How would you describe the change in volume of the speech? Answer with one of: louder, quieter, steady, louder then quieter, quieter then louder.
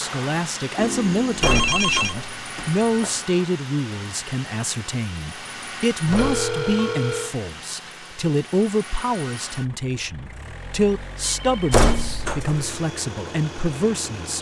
steady.